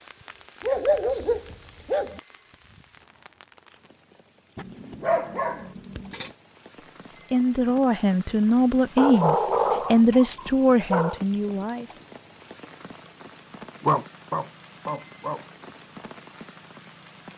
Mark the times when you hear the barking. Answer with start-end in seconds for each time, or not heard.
0.6-2.2, 4.5-6.3, 8.9-11.2, 13.8-15.4.